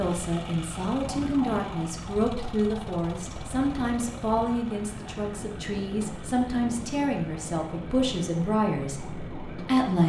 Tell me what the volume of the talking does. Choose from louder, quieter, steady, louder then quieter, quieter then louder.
steady.